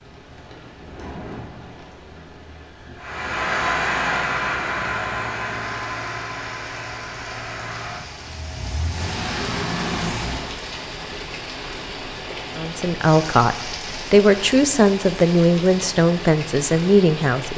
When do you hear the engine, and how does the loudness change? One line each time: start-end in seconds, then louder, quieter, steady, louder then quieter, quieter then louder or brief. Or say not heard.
3.0-10.6 quieter then louder.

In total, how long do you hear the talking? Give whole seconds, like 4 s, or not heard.
5 s.